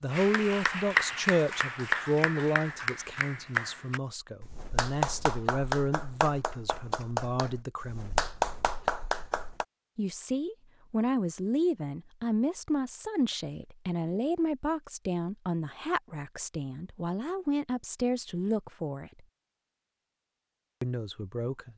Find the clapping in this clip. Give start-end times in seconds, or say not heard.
0.1-9.7.